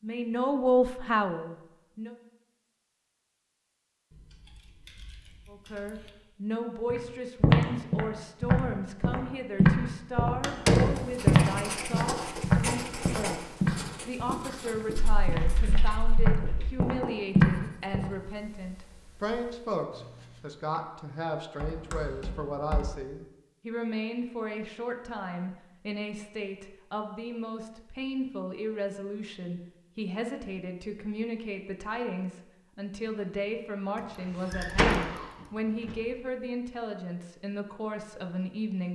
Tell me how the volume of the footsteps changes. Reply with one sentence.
The volume of the footsteps goes down, then up.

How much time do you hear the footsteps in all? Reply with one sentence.
You can hear the footsteps for 11 seconds altogether.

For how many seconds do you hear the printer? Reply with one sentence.
You can't hear the printer here.